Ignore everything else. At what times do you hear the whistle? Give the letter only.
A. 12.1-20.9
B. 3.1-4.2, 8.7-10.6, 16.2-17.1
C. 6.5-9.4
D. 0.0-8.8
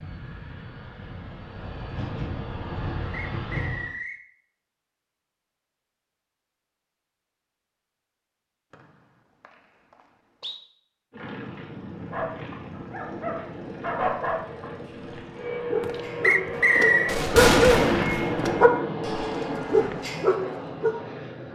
B.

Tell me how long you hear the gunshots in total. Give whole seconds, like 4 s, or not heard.
3 s.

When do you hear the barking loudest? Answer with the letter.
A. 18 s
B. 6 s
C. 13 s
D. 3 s
A.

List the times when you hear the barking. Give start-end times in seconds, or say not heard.
12.1-20.9.